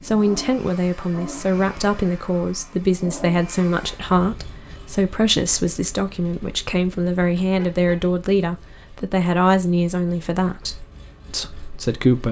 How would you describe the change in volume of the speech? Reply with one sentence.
The volume of the speech stays about the same.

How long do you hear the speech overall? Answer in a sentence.
You can hear the speech for 12 seconds altogether.